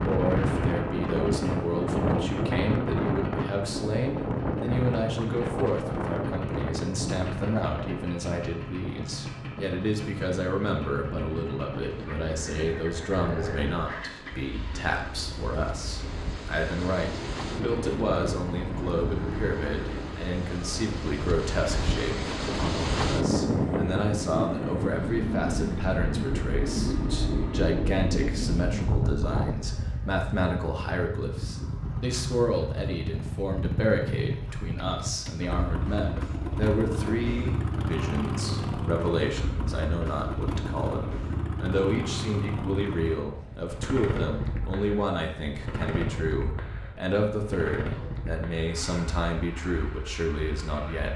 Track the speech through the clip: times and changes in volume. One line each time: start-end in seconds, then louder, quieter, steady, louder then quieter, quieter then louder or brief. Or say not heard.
0.0-51.1 steady.